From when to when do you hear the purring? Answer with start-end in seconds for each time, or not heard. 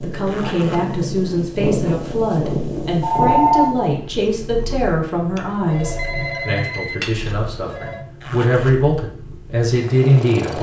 0.0-10.5.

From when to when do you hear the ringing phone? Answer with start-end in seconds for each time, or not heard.
3.0-3.8, 5.3-8.1.